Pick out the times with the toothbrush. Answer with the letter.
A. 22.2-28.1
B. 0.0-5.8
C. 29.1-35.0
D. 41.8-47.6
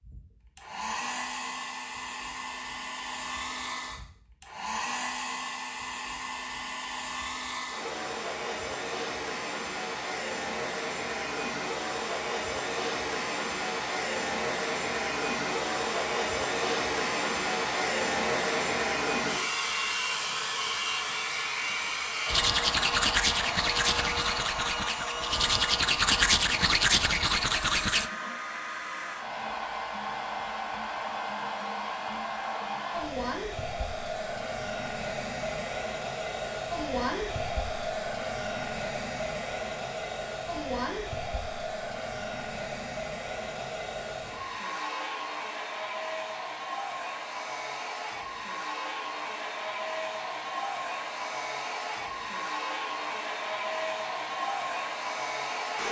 A.